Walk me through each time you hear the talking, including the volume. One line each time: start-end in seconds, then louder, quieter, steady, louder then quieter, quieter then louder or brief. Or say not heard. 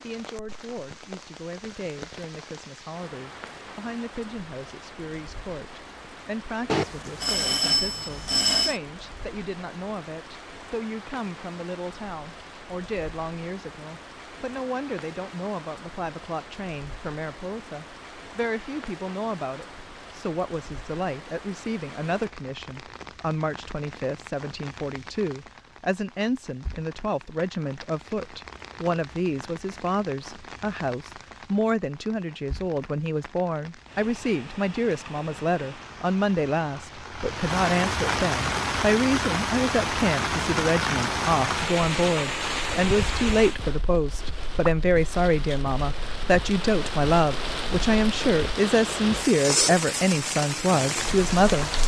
0.0-51.7 louder.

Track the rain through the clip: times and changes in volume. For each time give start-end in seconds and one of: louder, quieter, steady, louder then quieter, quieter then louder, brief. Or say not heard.
0.0-51.8 louder.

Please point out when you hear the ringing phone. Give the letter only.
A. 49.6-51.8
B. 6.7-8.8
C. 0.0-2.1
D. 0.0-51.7
B.